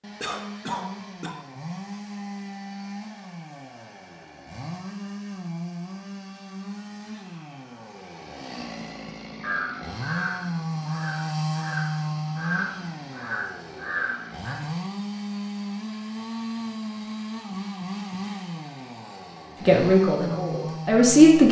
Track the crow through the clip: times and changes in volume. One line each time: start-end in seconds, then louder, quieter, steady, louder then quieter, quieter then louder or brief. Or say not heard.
9.4-14.6 quieter then louder.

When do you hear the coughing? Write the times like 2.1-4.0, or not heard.
0.2-1.4.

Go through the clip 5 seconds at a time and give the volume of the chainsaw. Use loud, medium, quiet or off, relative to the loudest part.
medium, medium, loud, loud, loud.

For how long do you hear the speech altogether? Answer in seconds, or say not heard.
2 s.